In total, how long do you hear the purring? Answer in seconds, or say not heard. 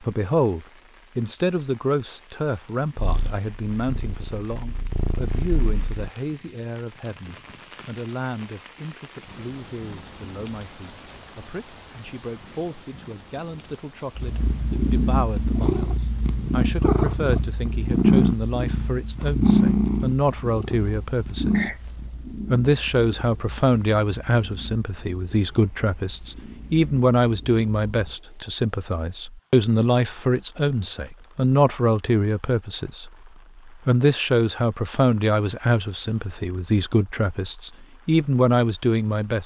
17 s.